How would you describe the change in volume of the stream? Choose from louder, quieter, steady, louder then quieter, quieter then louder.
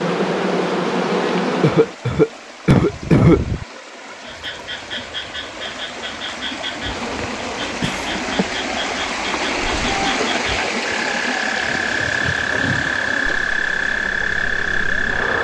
louder then quieter.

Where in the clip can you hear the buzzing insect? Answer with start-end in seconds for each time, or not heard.
0.0-1.9, 6.8-10.0, 11.6-15.3.